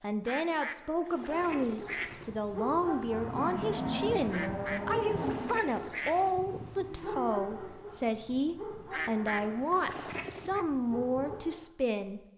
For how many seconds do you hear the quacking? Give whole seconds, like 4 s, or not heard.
6 s.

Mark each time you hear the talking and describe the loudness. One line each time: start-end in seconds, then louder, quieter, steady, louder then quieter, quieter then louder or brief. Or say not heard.
0.0-12.2 steady.